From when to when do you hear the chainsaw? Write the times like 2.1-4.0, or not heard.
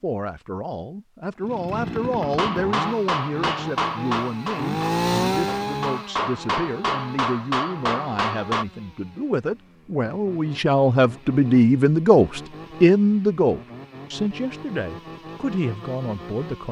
1.4-16.6.